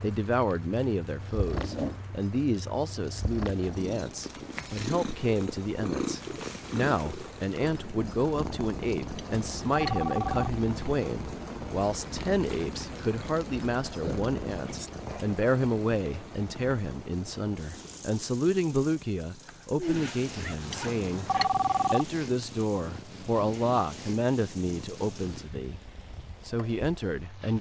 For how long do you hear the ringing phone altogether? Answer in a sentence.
The ringing phone can be heard for 3 seconds in total.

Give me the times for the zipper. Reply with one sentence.
You can hear the zipper from 1.5 to 2.5 s, from 14.1 to 14.8 s and from 19.4 to 20.9 s.